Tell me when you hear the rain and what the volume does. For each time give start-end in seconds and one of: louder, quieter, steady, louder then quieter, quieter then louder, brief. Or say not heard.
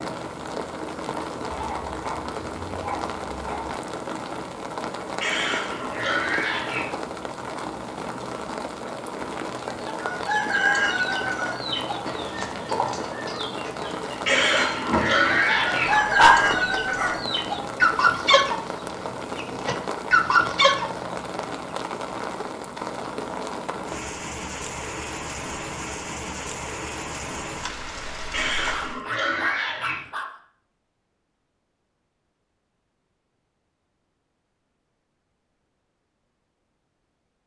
0.0-29.0 steady.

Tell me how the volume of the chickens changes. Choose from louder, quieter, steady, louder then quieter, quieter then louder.
quieter then louder.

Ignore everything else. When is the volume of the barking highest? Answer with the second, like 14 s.
16 s.